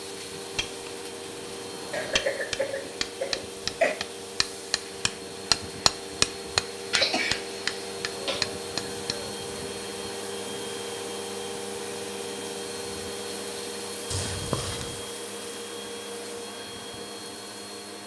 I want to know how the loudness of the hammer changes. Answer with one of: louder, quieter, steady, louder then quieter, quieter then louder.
louder then quieter.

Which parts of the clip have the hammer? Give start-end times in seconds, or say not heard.
0.6-9.3.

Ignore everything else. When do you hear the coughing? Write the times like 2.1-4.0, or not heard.
1.9-4.0, 6.9-8.4, 14.1-15.0.